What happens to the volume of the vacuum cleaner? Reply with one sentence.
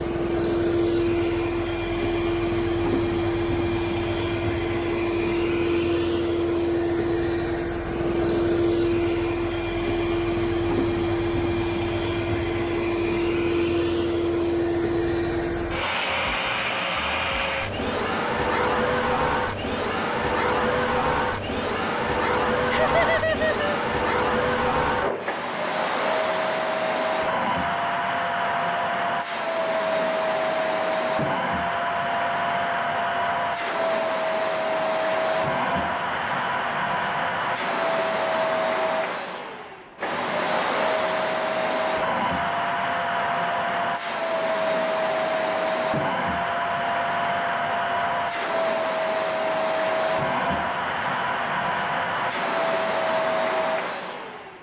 The volume of the vacuum cleaner stays about the same.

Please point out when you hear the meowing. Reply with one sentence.
You can't hear the meowing here.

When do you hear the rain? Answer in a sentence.
You can't hear the rain here.